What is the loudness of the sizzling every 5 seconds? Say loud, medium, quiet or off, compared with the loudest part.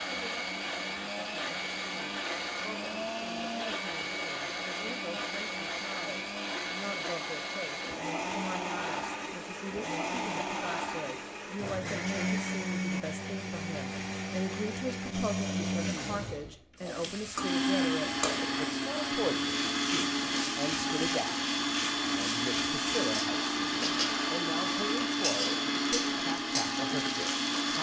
off, off, off, loud, loud, loud.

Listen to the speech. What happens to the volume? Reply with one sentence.
The loudness of the speech goes up.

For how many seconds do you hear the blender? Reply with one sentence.
The blender can be heard for 28 seconds in total.